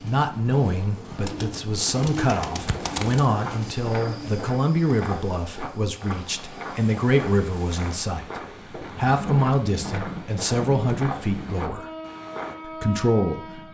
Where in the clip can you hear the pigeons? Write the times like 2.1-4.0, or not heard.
0.0-4.5.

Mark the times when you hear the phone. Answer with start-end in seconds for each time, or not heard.
not heard.